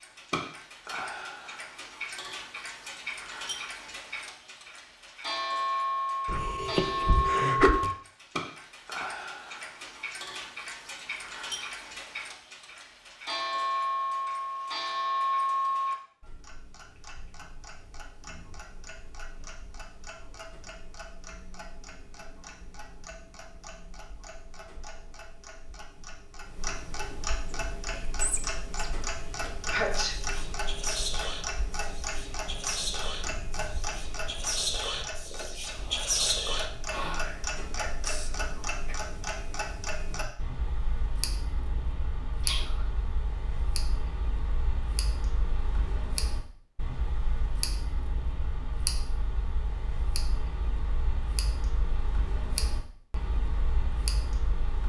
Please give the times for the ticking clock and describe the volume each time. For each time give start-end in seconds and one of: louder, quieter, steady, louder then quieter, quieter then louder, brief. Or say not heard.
0.0-54.8 quieter.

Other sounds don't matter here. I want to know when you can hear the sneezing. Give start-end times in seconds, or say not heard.
6.2-7.9, 29.7-30.2, 42.4-42.9.